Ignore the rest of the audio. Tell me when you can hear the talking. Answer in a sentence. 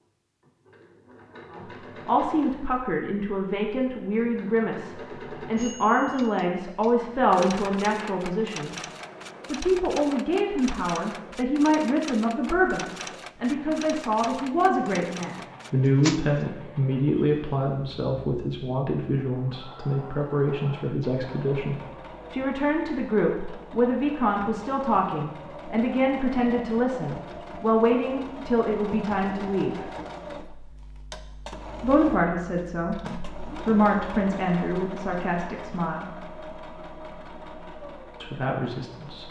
The talking can be heard from 1.6 to 8.8 s, from 9.5 to 29.9 s, from 31.8 to 36.0 s and from 38.2 to 39.2 s.